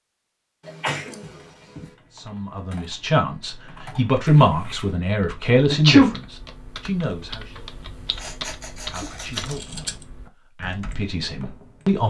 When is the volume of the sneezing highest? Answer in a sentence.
The volume of the sneezing peaks at 6 seconds.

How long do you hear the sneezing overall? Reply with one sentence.
The sneezing can be heard for 3 seconds in total.